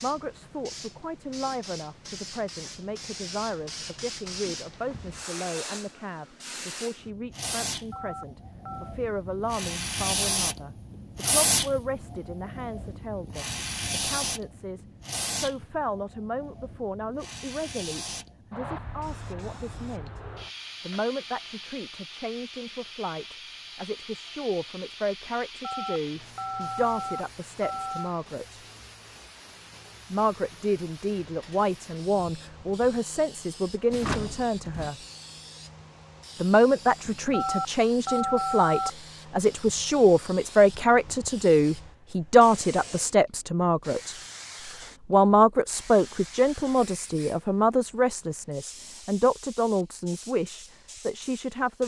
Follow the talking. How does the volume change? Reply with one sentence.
The volume of the talking goes up.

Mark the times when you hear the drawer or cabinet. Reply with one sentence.
The drawer or cabinet can be heard from 33.9 to 34.9 s.